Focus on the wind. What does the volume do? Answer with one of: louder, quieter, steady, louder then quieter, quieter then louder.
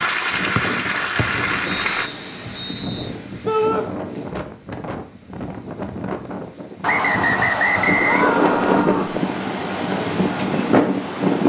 louder.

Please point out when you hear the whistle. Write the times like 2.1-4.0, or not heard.
0.6-3.1, 6.8-8.8.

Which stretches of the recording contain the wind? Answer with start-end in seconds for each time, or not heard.
0.0-11.4.